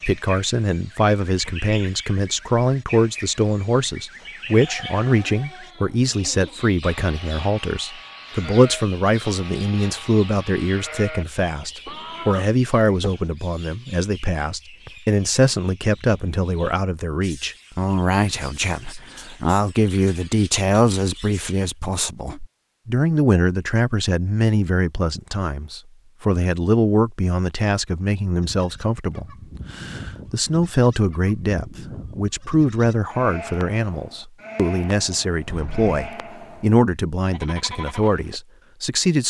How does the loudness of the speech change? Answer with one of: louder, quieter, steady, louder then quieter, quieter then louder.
steady.